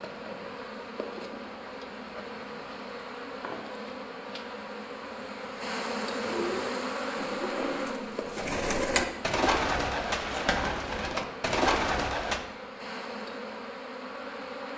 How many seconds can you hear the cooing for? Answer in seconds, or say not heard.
6 s.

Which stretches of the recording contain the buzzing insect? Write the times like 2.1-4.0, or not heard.
0.0-14.7.